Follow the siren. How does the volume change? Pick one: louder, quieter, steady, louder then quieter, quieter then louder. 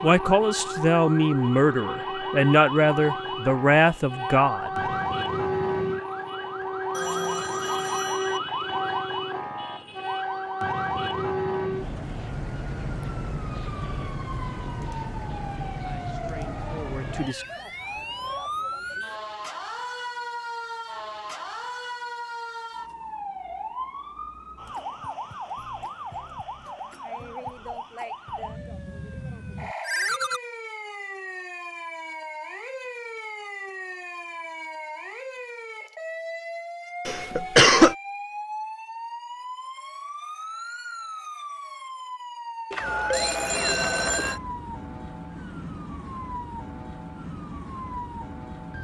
quieter.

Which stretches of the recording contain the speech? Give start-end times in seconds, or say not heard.
0.0-5.0, 15.8-17.4.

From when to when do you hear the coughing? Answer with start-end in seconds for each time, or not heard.
37.0-38.0.